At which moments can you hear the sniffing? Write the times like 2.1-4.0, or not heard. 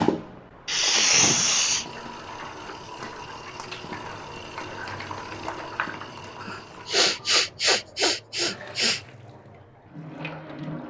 0.7-1.9, 6.4-9.0.